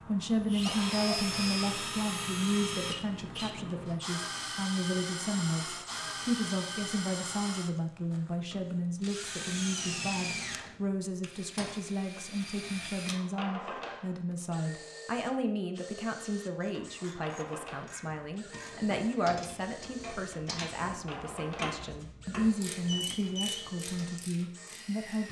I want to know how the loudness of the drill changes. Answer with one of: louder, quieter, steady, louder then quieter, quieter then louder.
quieter.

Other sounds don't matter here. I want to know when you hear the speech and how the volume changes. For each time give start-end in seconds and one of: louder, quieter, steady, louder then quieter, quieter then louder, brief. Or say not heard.
0.1-25.2 steady.